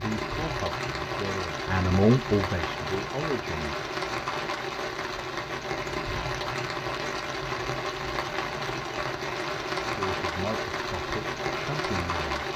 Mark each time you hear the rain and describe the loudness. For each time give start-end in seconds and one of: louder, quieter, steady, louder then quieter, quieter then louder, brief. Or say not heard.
0.0-12.5 steady.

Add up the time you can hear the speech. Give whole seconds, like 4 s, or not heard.
6 s.